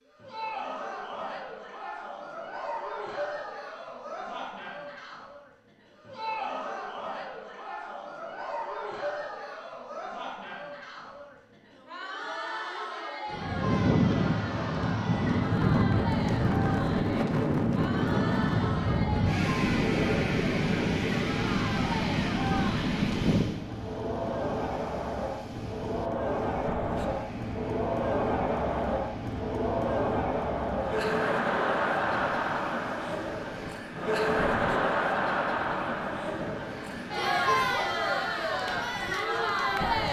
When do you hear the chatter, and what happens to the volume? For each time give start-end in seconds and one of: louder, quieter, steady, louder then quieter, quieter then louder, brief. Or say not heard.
0.1-40.0 louder.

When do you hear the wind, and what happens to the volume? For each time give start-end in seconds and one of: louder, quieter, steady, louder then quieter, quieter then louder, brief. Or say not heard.
13.3-40.0 quieter.